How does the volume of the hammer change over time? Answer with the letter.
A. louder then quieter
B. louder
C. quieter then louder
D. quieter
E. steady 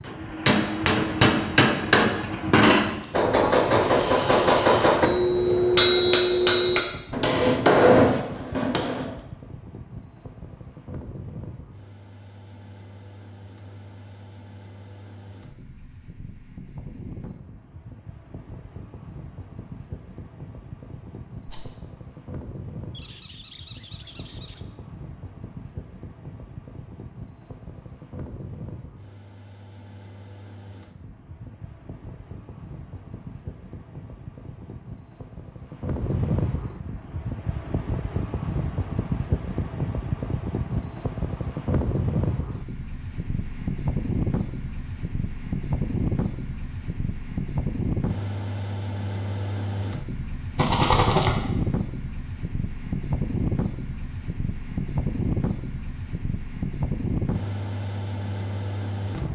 E.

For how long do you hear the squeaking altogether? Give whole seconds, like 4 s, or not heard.
2 s.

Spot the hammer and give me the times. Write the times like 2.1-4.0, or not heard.
0.1-9.1.